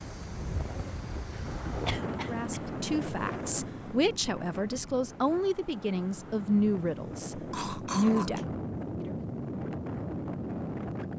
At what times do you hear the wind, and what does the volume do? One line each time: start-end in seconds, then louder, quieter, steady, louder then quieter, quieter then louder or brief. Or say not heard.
0.0-11.1 quieter then louder.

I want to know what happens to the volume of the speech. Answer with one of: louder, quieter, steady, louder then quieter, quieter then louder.
louder.